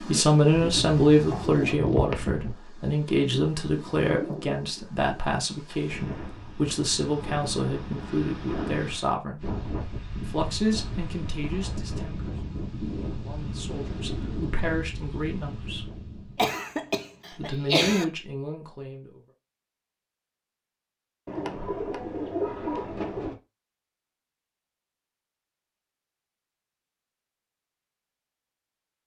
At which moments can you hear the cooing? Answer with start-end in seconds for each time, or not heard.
0.5-2.5, 21.2-23.4.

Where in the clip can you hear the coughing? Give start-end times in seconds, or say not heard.
16.4-18.1.